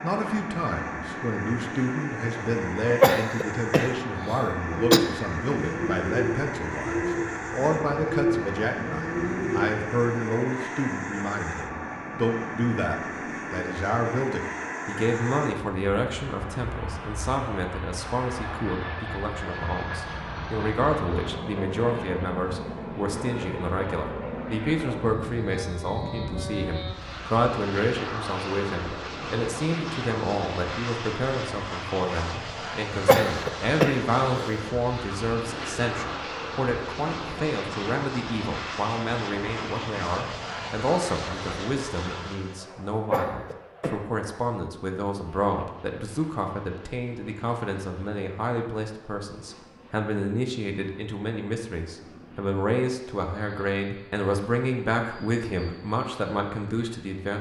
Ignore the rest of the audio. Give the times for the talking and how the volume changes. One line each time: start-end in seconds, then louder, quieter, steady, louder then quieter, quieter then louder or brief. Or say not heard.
0.0-57.3 steady.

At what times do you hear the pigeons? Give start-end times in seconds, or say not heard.
4.5-9.9.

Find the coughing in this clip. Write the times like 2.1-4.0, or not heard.
3.0-5.0, 33.0-34.6, 43.1-44.0.